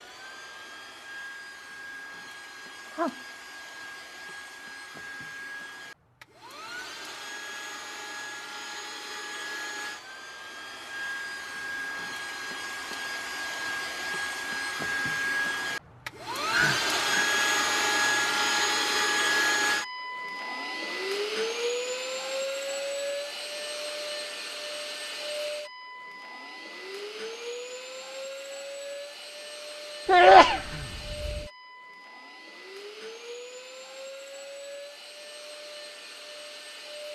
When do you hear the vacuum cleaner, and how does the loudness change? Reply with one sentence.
The vacuum cleaner can be heard from 0.0 to 37.1 s, getting louder then quieter.